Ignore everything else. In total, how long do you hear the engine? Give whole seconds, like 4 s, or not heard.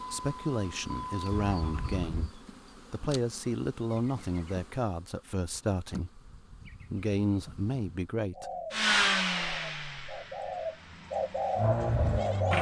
6 s.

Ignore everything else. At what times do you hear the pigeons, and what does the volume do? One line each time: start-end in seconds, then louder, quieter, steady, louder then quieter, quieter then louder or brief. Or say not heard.
8.3-12.5 louder.